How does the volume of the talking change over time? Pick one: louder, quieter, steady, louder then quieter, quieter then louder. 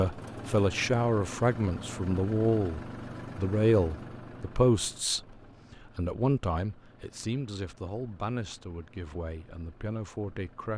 quieter.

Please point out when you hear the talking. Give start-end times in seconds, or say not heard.
0.0-10.7.